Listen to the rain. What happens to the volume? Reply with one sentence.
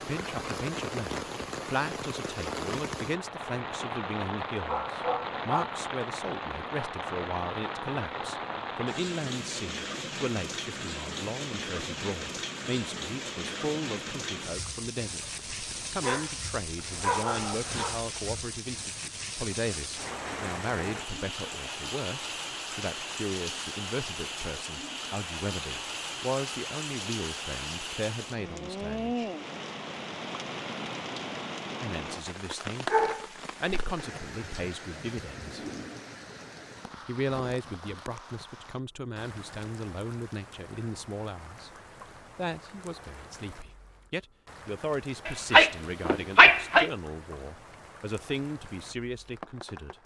The loudness of the rain goes down.